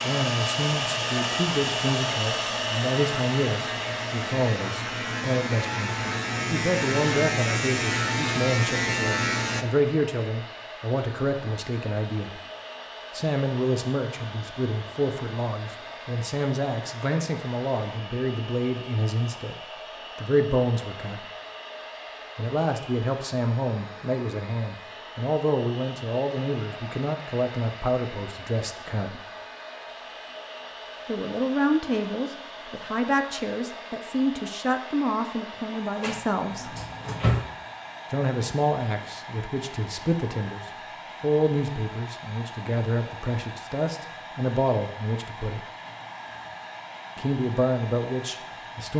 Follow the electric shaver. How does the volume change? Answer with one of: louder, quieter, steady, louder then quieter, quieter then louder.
louder.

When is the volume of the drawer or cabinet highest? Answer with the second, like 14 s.
37 s.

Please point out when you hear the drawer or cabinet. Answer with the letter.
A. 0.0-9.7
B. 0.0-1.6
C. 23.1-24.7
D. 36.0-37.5
D.